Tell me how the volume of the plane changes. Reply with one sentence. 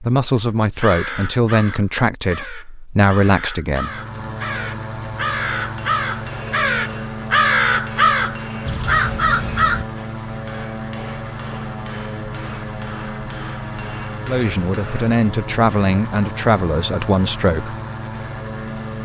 The loudness of the plane stays about the same.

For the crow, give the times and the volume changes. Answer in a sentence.
You can hear the crow from 0.8 to 9.8 s, getting louder.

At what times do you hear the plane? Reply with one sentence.
The plane can be heard from 3.6 to 19.0 s.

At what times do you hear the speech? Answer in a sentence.
The speech can be heard from 0.0 to 3.9 s and from 14.2 to 17.8 s.